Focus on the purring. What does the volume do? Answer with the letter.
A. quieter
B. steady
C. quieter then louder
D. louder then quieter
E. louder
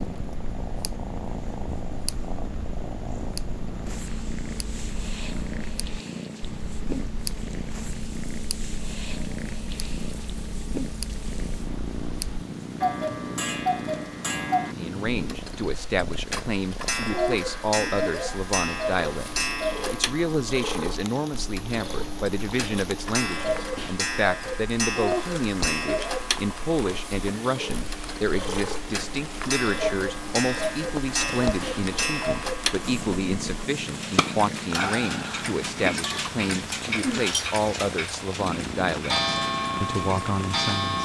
B.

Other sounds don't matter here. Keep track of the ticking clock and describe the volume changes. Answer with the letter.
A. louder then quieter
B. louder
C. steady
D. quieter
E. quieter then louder
B.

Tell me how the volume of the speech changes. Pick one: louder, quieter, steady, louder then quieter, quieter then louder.
steady.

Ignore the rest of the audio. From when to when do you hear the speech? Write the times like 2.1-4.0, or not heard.
14.6-41.0.